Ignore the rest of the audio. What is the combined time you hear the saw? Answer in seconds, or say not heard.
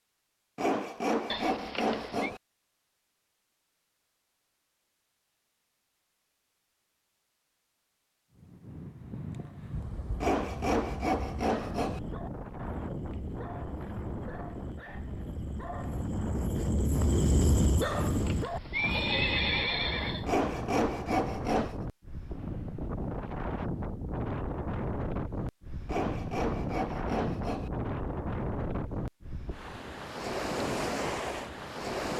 7 s.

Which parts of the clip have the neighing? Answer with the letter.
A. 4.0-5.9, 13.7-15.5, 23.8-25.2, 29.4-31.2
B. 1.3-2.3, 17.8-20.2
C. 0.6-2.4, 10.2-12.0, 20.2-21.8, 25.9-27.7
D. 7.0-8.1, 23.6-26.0
B.